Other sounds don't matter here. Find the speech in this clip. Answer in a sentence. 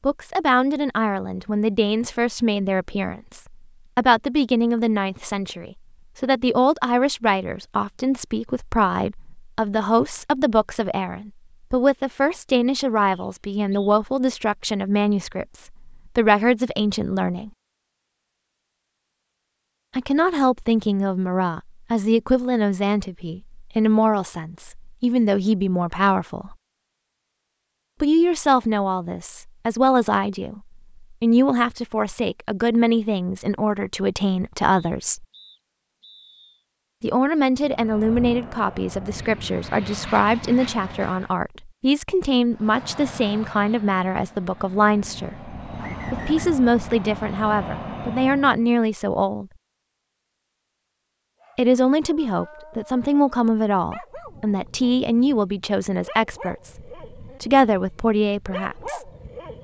The speech can be heard from 0.0 to 17.5 s, from 19.9 to 26.6 s, from 28.0 to 35.2 s, from 37.0 to 49.5 s and from 51.5 to 59.1 s.